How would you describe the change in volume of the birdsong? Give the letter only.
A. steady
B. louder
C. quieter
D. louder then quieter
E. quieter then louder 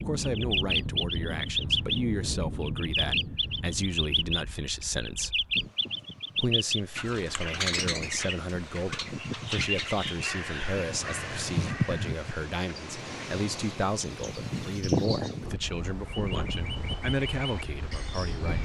C.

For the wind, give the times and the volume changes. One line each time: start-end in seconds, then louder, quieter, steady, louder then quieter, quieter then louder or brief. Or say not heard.
0.0-18.6 quieter then louder.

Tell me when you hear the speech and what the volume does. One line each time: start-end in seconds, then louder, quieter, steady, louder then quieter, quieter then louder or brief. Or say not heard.
0.0-5.4 steady
6.3-18.6 steady.